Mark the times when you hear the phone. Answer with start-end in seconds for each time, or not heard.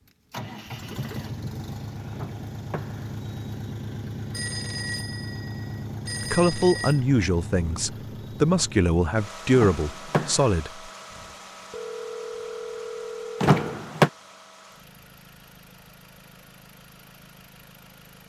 4.3-7.0, 11.1-13.8.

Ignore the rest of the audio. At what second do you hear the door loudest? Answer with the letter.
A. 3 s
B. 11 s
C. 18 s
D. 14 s
D.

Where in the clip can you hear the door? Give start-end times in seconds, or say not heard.
2.1-3.1, 9.5-10.6, 13.4-14.1.